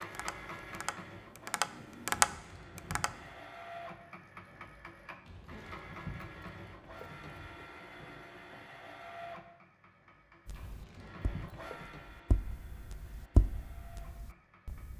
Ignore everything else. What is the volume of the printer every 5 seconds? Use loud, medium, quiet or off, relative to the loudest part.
loud, loud, medium.